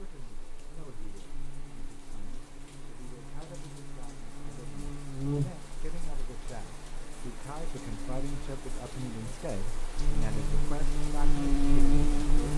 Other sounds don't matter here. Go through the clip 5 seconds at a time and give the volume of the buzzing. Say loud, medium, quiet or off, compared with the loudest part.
quiet, medium, loud.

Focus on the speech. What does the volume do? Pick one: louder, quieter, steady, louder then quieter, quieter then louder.
louder.